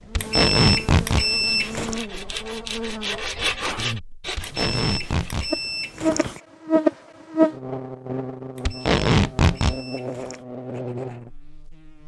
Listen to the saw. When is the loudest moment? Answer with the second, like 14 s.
4 s.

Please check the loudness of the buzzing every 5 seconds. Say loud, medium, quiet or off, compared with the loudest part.
medium, loud, medium.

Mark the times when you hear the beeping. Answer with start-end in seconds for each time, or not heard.
0.1-2.0, 4.4-6.4, 8.6-10.4.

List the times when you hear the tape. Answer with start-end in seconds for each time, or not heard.
0.1-1.2, 4.3-5.5, 8.7-9.8.